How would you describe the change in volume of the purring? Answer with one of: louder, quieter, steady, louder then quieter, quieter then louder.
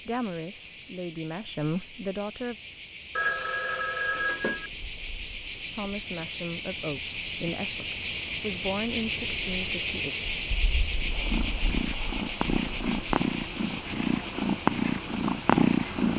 louder.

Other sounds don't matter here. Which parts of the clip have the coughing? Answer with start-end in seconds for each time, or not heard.
not heard.